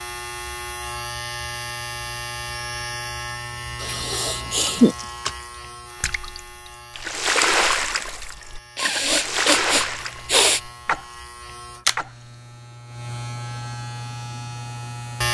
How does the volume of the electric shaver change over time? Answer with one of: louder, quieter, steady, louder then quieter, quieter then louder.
quieter then louder.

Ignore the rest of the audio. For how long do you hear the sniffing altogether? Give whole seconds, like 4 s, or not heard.
3 s.